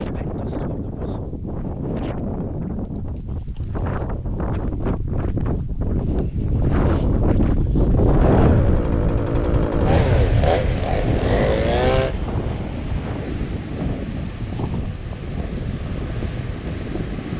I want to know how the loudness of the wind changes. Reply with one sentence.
The loudness of the wind goes up, then down.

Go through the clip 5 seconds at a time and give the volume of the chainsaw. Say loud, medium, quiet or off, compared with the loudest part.
off, loud, loud, off.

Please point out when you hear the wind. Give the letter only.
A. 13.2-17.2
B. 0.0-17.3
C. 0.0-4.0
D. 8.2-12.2
B.